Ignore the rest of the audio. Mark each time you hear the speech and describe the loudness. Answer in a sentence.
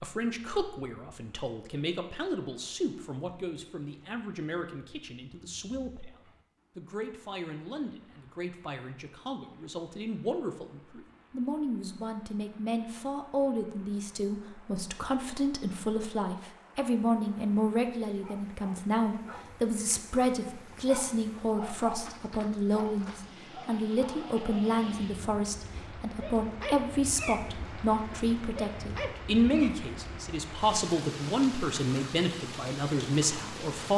You can hear the speech from 0.0 to 33.9 s, getting louder.